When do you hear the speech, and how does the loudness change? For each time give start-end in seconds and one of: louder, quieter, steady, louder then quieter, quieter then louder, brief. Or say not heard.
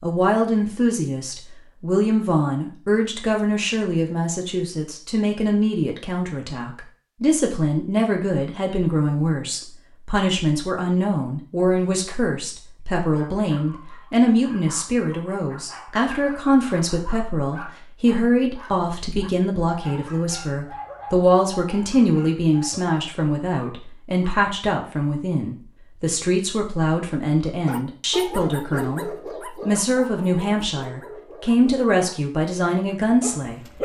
0.0-33.6 steady.